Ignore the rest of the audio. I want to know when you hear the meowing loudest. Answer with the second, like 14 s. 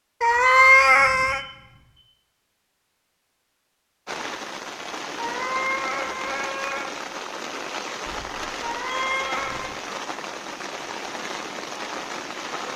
1 s.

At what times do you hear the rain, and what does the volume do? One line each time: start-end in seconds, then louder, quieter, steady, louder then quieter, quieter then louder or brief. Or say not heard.
4.0-12.7 steady.